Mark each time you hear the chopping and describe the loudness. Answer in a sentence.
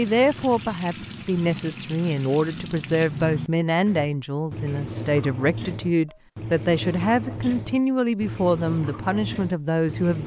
You can't hear the chopping here.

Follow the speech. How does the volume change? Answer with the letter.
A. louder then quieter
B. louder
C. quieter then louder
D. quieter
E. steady
E.